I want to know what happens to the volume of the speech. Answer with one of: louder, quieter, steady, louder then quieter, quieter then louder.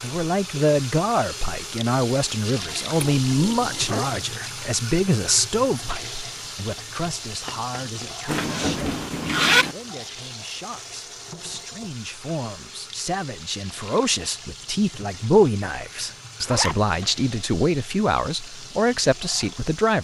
quieter then louder.